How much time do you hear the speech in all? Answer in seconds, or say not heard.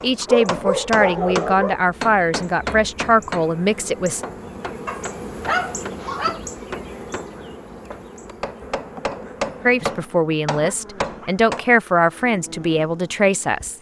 8 s.